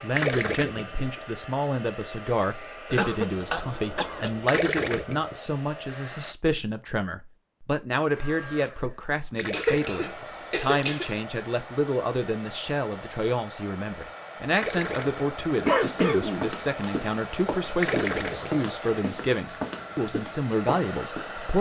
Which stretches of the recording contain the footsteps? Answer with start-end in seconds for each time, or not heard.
15.7-21.2.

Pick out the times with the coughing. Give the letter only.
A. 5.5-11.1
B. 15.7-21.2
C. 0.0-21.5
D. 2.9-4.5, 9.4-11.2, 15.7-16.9
D.